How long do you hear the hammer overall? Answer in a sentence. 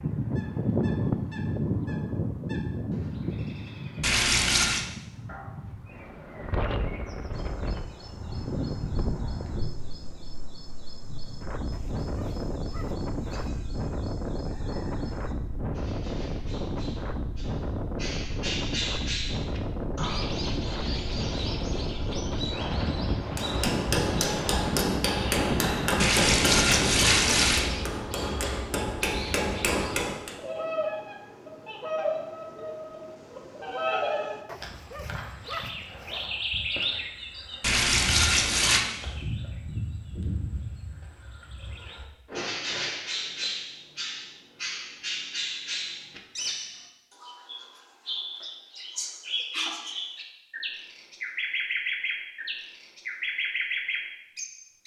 The hammer can be heard for 7 seconds in total.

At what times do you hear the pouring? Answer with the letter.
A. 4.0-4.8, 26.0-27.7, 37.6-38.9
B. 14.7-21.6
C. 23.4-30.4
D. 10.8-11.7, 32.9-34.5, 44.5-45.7
A.